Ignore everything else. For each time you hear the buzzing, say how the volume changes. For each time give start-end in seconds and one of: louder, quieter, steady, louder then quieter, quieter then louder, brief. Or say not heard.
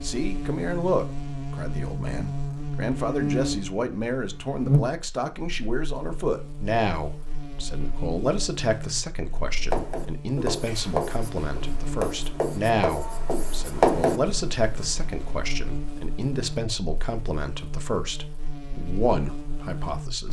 0.0-20.2 quieter.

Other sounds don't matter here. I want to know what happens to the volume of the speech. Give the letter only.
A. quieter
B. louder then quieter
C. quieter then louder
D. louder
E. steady
E.